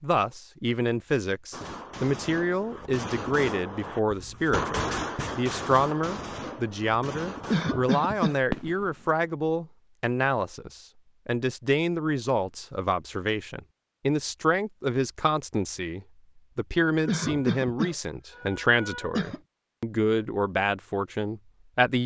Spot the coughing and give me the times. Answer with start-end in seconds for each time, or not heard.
7.5-8.6, 17.1-19.4.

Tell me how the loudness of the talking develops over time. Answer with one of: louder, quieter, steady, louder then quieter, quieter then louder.
steady.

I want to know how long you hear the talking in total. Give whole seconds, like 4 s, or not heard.
22 s.